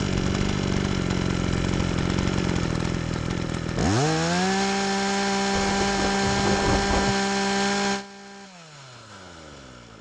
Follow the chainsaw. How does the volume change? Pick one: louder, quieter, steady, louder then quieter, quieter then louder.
quieter.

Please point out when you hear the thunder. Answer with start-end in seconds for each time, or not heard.
5.5-7.2.